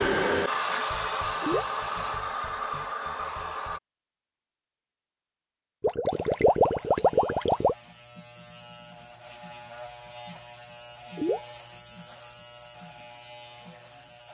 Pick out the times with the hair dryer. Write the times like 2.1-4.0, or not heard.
0.0-3.8.